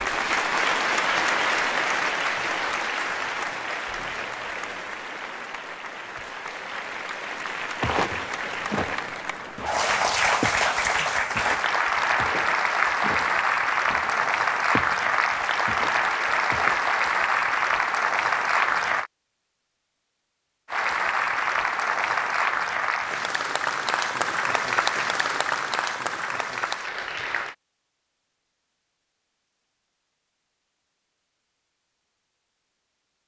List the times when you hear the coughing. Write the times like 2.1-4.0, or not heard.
not heard.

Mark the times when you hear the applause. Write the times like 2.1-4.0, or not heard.
0.0-19.1, 20.6-27.6.